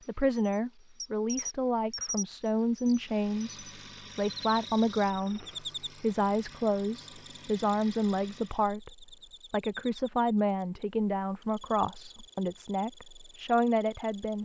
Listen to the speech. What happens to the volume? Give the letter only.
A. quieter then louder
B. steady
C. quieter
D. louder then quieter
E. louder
B.